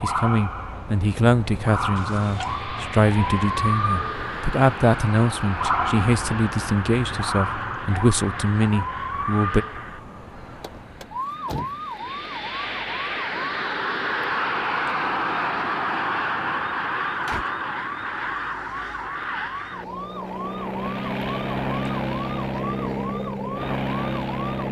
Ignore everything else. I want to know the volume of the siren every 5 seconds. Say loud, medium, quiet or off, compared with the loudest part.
loud, loud, medium, medium, medium.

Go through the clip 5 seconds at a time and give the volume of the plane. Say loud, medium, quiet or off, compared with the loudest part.
medium, medium, loud, loud, loud.